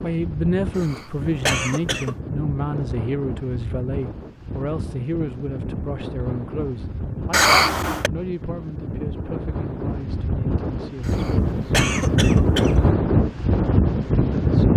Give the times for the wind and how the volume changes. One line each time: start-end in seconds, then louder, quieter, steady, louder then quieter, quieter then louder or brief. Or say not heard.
0.0-14.7 louder.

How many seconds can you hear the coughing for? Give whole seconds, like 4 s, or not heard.
4 s.